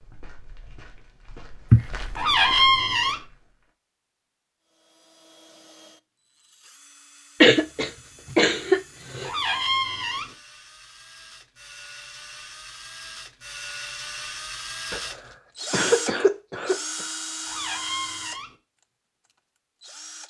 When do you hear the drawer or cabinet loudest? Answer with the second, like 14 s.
3 s.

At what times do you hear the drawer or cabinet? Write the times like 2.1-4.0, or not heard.
2.1-3.2, 9.2-10.3, 17.4-18.6.